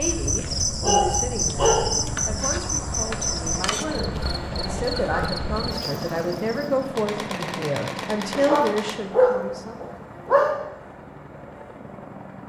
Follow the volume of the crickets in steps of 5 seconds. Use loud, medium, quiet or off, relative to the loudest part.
loud, medium, off.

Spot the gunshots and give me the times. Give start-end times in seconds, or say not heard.
7.0-8.9.